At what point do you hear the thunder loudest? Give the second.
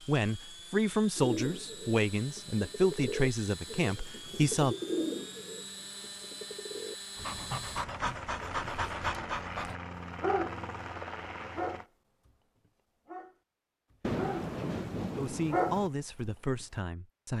14 s.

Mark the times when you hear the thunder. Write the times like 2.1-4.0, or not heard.
14.0-15.9.